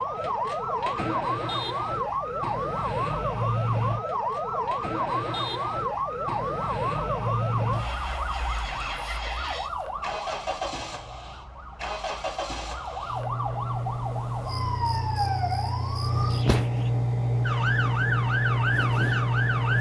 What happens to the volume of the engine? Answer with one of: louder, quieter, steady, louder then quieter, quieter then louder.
louder.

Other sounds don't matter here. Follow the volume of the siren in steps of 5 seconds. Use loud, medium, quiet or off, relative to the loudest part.
loud, loud, medium, loud.